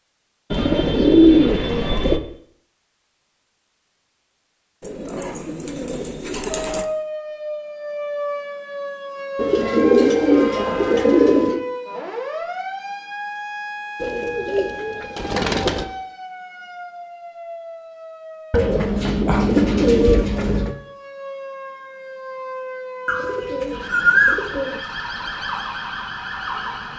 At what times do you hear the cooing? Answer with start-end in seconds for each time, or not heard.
0.5-2.2, 4.8-6.8, 9.3-11.6, 14.0-15.8, 18.5-20.8, 23.1-24.8.